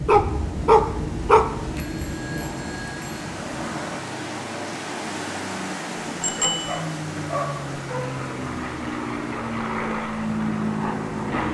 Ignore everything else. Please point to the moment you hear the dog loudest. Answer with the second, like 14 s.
1 s.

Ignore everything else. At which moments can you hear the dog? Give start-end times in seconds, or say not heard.
0.1-1.6, 6.2-8.2.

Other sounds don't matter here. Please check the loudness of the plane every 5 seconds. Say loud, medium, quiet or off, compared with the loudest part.
medium, medium, loud.